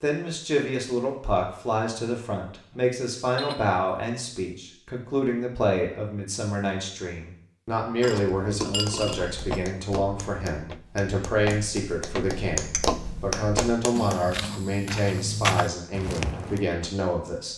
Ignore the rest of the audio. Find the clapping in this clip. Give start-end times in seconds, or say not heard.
8.7-14.2.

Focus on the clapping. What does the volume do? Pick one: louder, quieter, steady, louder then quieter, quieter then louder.
louder.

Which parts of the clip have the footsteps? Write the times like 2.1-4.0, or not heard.
9.2-16.6.